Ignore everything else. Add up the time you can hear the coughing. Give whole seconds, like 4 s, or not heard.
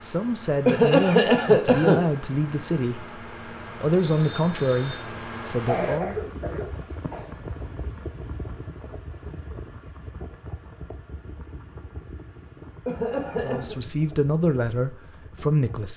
4 s.